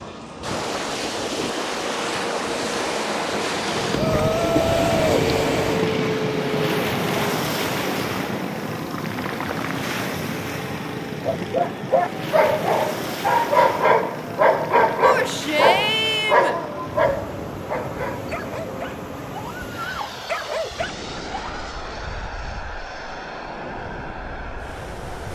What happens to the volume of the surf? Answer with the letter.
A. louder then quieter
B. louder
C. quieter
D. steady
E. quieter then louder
C.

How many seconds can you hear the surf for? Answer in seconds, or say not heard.
25 s.